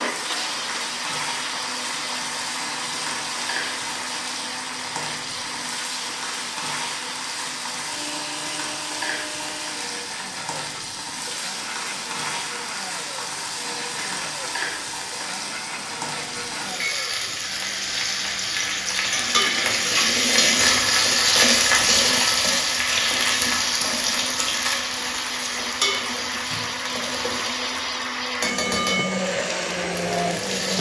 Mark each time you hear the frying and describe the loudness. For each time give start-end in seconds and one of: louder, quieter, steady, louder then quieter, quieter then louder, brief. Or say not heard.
0.0-30.7 louder then quieter.